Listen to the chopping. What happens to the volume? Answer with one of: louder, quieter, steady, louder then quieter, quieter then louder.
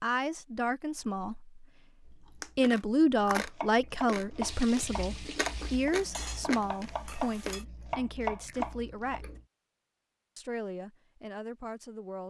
quieter then louder.